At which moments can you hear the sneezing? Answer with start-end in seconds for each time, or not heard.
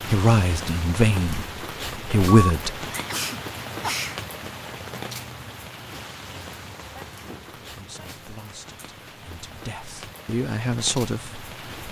2.2-4.2, 6.9-8.1.